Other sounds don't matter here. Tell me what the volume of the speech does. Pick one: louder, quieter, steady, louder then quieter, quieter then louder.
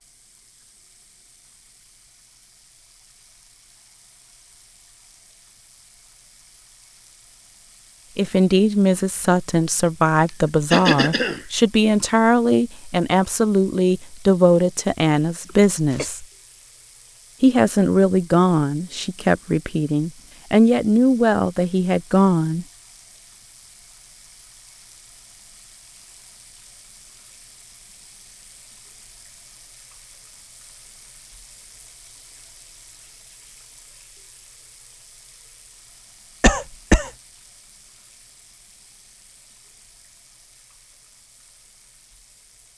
steady.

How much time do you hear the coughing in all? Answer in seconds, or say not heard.
2 s.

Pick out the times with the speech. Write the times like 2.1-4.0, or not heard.
8.2-16.2, 17.4-22.6.